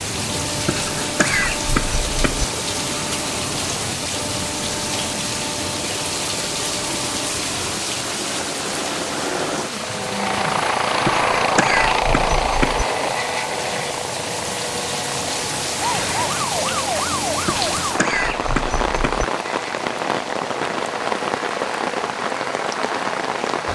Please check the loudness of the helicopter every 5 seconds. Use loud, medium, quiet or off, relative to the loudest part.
medium, medium, loud, medium, medium.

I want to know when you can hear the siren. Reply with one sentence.
The siren can be heard from 15.8 to 18.0 s.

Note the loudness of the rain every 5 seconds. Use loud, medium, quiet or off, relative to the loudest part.
loud, loud, medium, loud, loud.